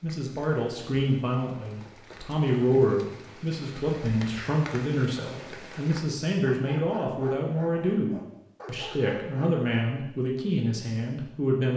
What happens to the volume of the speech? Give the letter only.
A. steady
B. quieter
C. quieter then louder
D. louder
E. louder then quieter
A.